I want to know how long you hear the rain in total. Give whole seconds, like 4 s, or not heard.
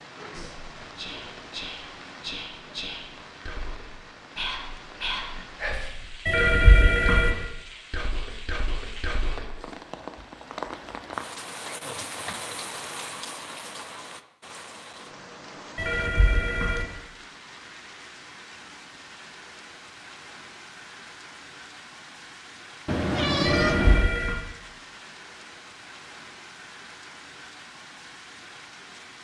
29 s.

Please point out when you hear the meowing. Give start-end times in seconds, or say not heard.
22.9-24.1.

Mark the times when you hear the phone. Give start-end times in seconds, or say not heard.
6.2-7.3, 15.8-16.9, 23.4-24.4.